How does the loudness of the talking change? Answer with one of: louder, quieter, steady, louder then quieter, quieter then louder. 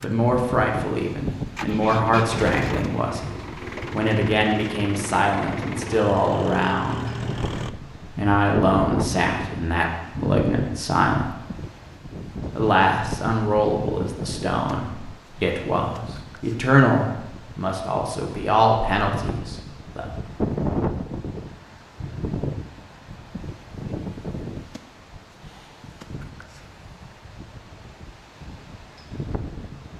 steady.